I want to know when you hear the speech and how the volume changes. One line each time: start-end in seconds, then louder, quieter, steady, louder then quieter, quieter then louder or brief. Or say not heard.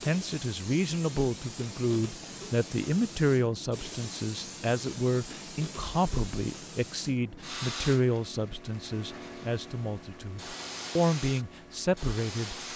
0.1-12.6 steady.